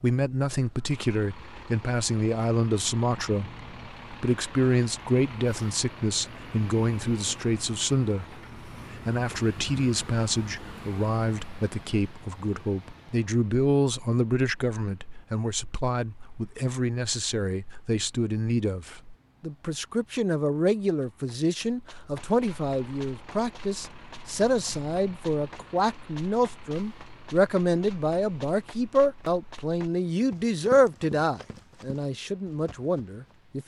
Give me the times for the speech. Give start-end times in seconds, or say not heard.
0.0-33.6.